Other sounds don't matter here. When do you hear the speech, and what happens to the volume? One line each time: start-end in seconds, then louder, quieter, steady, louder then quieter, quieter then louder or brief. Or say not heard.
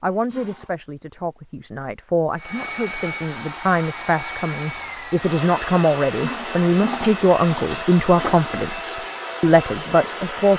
0.0-10.5 louder.